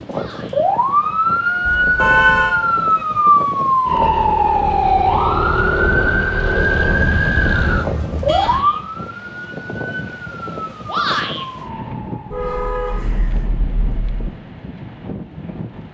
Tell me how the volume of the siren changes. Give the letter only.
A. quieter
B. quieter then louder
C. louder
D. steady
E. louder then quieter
A.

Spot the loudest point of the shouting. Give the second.
11 s.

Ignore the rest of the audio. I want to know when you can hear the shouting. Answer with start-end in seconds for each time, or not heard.
0.1-0.7, 8.2-8.8, 10.8-11.4.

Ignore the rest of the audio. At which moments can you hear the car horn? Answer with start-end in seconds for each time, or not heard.
1.6-2.5, 6.5-8.6, 12.3-14.2.